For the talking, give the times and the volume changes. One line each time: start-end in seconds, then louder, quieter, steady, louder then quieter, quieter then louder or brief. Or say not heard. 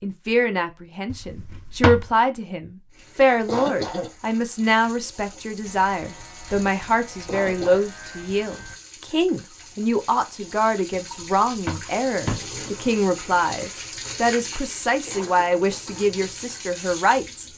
0.0-17.4 steady.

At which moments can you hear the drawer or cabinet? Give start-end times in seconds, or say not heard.
1.1-2.1, 10.9-12.8.